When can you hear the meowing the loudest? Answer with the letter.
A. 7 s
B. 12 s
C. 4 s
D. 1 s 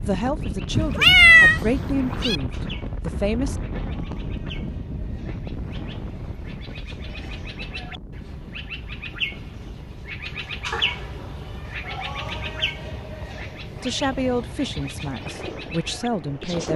D.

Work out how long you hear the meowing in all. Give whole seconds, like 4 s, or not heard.
3 s.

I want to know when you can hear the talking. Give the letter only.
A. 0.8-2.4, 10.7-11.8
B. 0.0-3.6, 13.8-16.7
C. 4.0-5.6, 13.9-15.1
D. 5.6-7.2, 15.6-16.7
B.